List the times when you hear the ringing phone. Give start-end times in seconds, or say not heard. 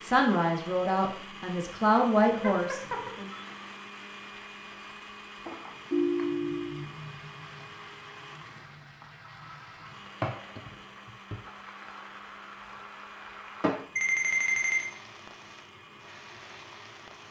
2.4-3.4, 5.9-6.8, 13.9-14.8.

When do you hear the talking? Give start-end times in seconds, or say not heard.
0.0-3.3.